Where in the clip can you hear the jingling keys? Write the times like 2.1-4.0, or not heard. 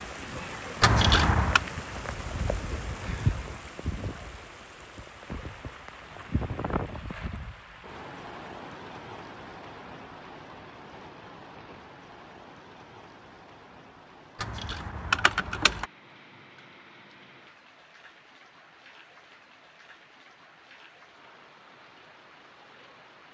0.8-1.6, 14.4-15.8.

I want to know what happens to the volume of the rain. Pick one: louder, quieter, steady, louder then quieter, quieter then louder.
quieter.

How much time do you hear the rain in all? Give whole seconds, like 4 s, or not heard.
23 s.